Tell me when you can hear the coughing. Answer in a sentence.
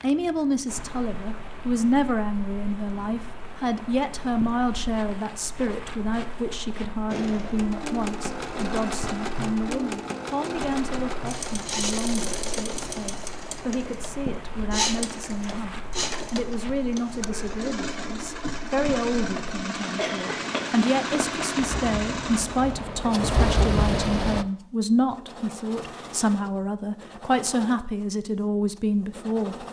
You can hear the coughing from 19.9 to 21.1 s.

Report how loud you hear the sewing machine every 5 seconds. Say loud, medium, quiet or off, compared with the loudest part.
off, loud, loud, loud, loud, medium.